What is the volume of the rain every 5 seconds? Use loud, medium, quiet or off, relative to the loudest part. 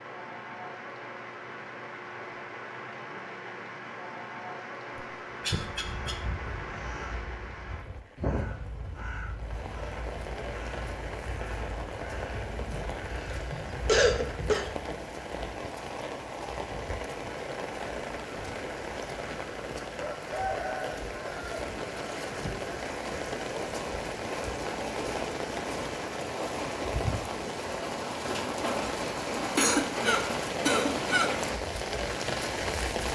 medium, medium, medium, medium, loud, loud, loud.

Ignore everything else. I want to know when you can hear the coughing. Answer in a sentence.
The coughing can be heard from 5.0 to 6.2 s, from 12.7 to 14.7 s and from 29.4 to 31.3 s.